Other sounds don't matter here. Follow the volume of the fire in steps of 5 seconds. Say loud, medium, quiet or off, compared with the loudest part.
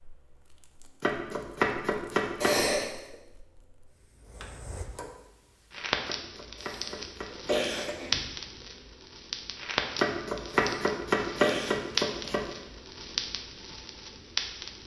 quiet, loud, loud.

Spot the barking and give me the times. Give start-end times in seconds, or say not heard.
not heard.